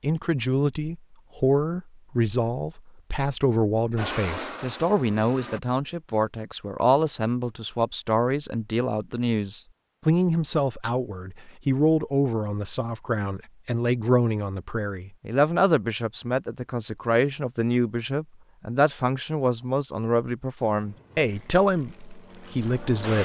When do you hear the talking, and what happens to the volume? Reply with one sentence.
You can hear the talking from 0.0 to 23.2 s, at a steady volume.